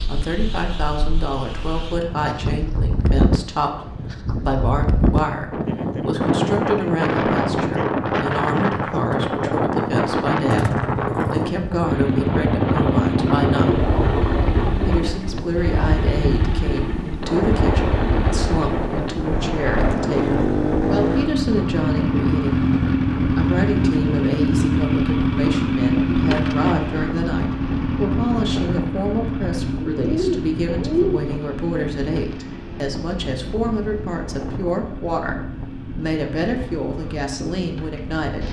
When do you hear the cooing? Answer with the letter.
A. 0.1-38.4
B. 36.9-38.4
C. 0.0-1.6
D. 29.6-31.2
D.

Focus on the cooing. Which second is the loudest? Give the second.
31 s.